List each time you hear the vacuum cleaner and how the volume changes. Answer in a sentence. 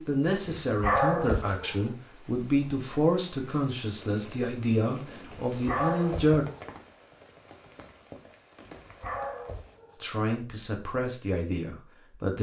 You can't hear the vacuum cleaner here.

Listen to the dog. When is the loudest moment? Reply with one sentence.
The loudest moment of the dog is at 1 second.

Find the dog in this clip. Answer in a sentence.
The dog can be heard from 0.7 to 1.9 s, from 5.5 to 6.8 s and from 8.7 to 10.1 s.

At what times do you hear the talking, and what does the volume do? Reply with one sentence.
The talking can be heard from 0.1 to 6.5 s, at a steady volume; and briefly from 10.0 to 12.3 s.